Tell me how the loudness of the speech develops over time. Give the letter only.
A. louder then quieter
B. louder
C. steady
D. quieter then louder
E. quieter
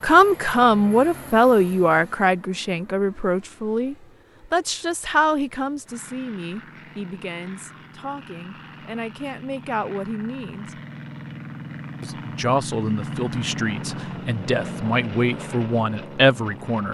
D.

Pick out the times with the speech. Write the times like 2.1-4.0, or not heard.
0.0-10.7, 12.0-16.8.